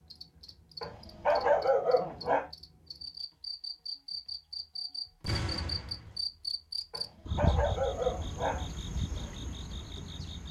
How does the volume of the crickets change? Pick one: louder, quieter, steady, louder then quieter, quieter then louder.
louder then quieter.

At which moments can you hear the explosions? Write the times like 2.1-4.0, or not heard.
5.2-6.2.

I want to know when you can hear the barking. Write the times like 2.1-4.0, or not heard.
0.8-2.5, 6.9-8.7.